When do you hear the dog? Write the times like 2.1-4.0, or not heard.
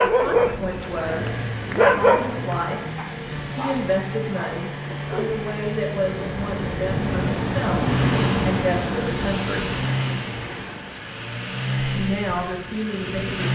0.0-5.5.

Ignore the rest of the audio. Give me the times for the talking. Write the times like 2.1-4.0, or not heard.
0.1-2.8, 3.5-9.8, 11.9-13.5.